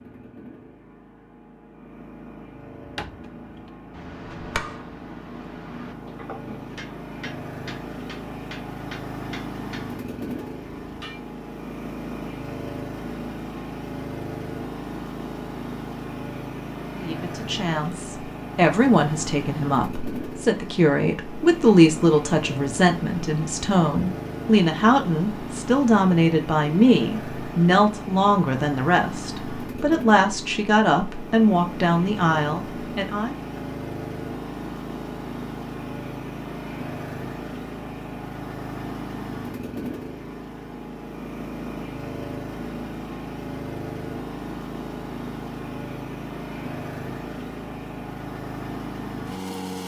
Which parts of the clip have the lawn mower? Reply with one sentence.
The lawn mower can be heard from 0.0 to 49.8 s.